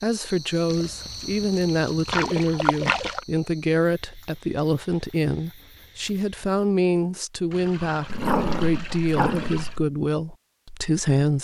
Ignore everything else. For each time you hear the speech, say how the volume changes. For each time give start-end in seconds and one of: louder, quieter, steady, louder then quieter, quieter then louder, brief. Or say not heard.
0.0-11.3 steady.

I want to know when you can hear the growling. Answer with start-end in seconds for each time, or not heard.
8.1-9.8.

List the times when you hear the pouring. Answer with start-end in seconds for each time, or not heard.
0.7-3.2, 7.5-9.8.